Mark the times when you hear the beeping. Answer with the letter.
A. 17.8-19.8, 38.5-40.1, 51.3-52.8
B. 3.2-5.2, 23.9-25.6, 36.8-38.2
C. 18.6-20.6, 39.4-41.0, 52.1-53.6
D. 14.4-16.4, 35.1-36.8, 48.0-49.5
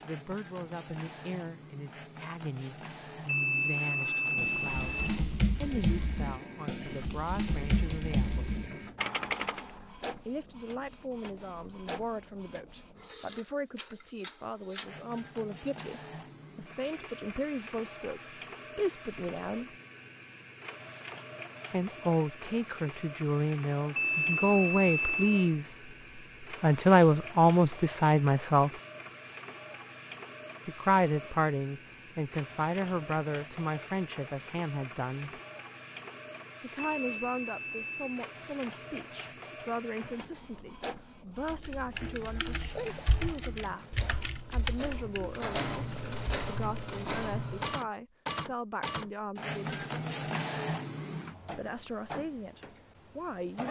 B.